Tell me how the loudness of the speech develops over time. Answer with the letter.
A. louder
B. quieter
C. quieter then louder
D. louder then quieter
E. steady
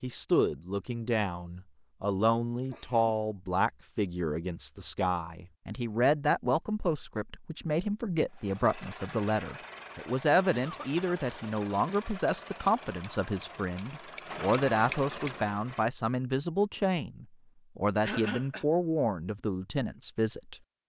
E.